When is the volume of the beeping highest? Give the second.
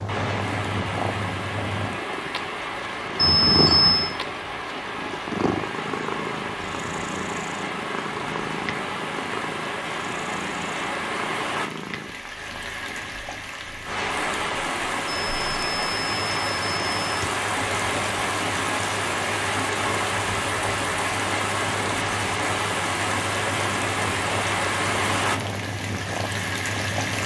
4 s.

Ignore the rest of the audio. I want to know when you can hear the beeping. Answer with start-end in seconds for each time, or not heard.
3.1-4.1, 15.1-17.3.